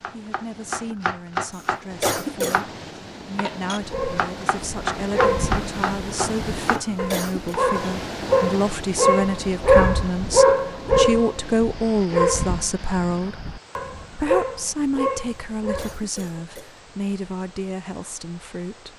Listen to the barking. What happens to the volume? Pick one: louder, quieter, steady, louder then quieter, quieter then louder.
louder then quieter.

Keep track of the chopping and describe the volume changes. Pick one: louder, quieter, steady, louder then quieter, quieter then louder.
quieter then louder.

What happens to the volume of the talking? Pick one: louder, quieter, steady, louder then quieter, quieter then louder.
louder then quieter.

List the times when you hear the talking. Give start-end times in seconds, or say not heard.
0.1-13.4, 14.1-18.9.